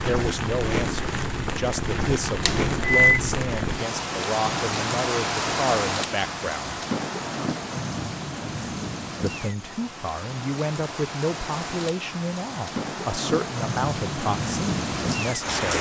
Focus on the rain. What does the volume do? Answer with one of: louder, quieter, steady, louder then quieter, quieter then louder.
quieter then louder.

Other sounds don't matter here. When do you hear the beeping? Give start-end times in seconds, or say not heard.
2.4-3.1.